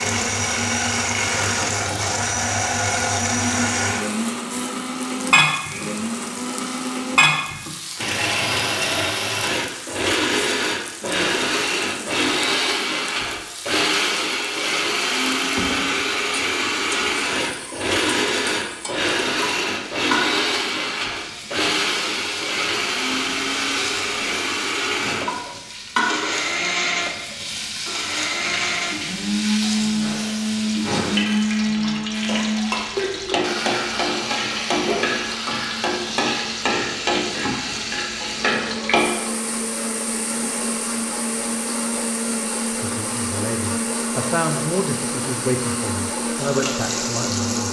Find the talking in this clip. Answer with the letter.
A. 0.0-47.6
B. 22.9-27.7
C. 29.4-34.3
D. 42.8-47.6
D.